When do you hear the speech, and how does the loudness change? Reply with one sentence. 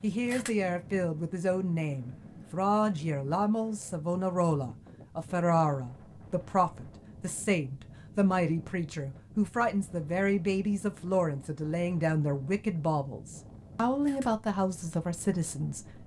The speech can be heard from 0.0 to 16.0 s, at a steady volume.